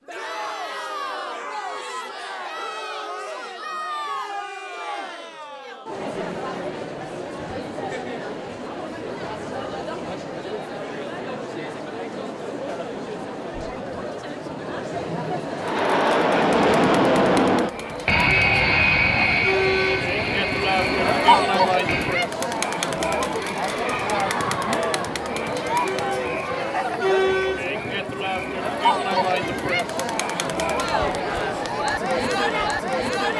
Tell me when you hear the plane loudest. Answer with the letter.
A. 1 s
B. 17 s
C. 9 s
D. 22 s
B.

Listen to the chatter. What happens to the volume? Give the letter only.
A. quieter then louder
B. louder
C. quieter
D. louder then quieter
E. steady
B.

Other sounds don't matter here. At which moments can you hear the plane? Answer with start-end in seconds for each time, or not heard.
15.6-22.2.